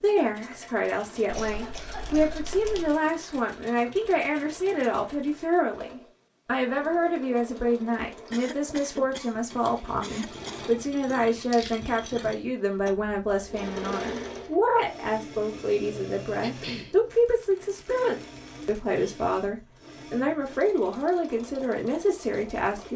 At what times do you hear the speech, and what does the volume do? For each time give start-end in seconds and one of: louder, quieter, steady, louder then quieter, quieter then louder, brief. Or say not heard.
0.0-22.9 steady.